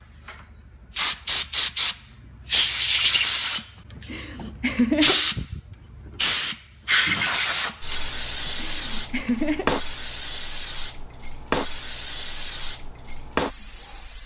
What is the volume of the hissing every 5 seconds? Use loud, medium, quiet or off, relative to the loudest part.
loud, loud, medium.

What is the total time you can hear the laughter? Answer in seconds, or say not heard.
3 s.